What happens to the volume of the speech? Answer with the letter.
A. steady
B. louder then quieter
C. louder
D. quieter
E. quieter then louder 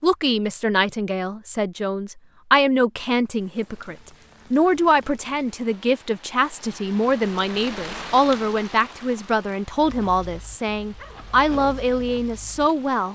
A.